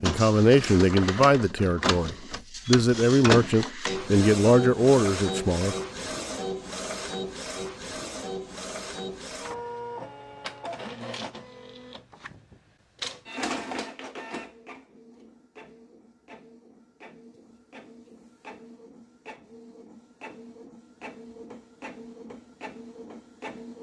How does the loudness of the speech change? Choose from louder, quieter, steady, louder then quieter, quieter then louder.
quieter then louder.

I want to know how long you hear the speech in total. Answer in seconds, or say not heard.
6 s.